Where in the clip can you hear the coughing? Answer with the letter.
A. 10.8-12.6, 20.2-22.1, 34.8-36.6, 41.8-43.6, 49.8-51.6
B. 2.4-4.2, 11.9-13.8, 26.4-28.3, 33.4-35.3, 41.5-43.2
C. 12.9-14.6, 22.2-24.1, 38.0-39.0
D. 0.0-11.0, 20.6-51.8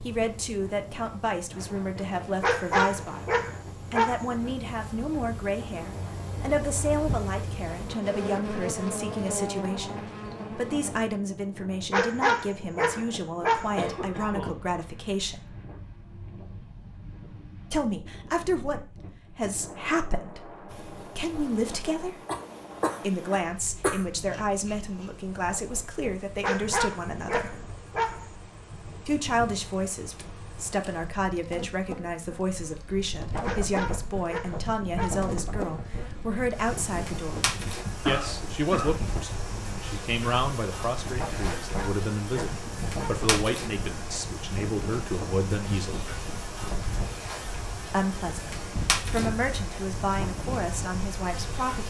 C.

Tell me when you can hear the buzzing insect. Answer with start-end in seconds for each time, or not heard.
0.0-11.0, 20.6-51.8.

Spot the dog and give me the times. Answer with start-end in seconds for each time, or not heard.
2.4-4.2, 11.9-13.8, 26.4-28.3, 33.4-35.3, 41.5-43.2.